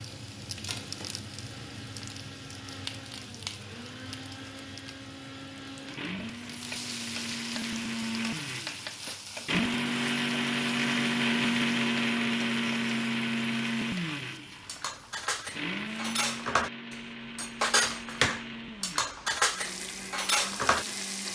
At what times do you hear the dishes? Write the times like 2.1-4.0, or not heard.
14.7-20.9.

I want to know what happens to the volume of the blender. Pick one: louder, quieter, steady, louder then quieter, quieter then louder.
louder then quieter.